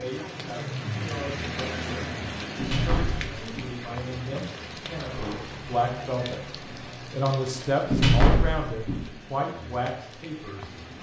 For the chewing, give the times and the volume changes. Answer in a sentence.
You can't hear the chewing here.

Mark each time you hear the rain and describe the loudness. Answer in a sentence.
The rain can be heard from 0.0 to 10.9 s, getting quieter.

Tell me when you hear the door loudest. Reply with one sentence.
The loudest moment of the door is at 8 seconds.